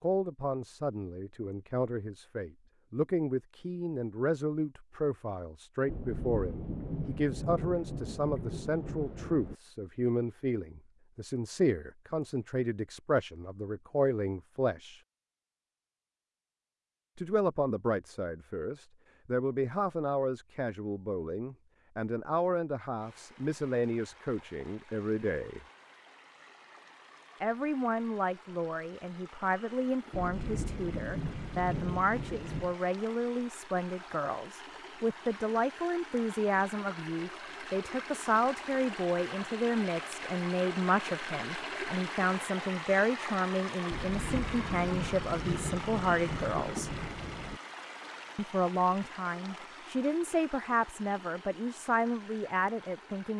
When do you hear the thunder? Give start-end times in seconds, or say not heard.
5.8-9.6, 30.1-32.8, 43.9-47.6.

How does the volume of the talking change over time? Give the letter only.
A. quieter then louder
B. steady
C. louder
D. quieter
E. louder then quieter
B.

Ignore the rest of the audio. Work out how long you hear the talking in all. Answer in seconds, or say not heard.
48 s.